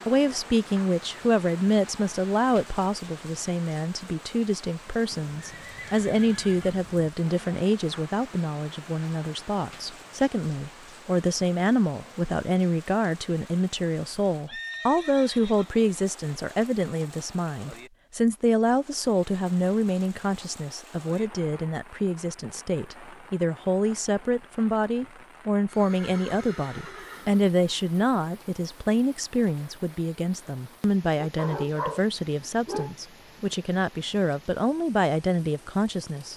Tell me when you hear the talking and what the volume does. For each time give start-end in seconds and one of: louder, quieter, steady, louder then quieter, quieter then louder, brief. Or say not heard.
0.1-36.3 steady.